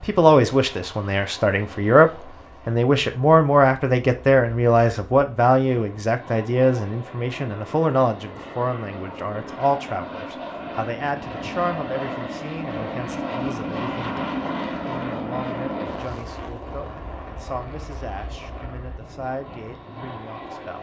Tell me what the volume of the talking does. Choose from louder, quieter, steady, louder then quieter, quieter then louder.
quieter.